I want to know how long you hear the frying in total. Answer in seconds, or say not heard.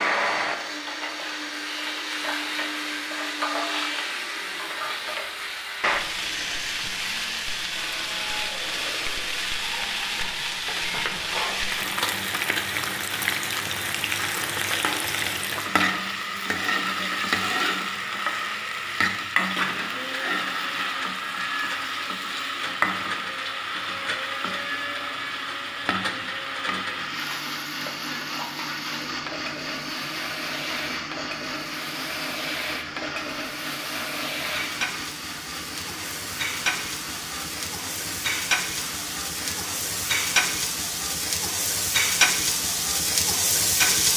44 s.